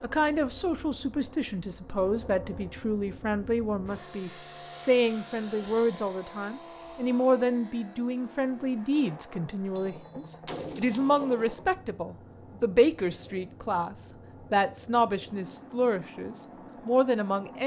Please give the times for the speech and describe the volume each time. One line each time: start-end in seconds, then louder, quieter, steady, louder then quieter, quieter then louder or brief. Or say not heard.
0.0-17.6 steady.